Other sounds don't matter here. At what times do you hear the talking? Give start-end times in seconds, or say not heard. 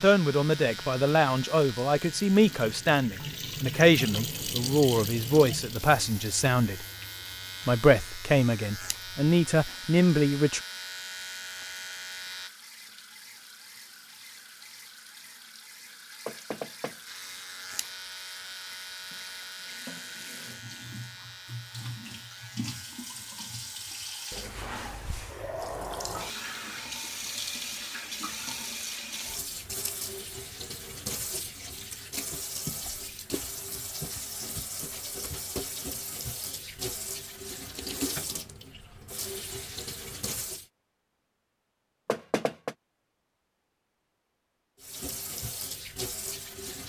0.0-6.8, 7.7-10.6.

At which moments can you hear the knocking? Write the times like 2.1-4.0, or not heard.
16.2-17.0, 42.0-42.8.